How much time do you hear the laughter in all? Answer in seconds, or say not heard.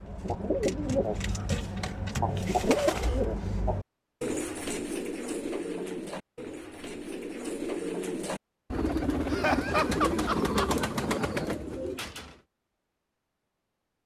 2 s.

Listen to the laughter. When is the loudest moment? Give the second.
10 s.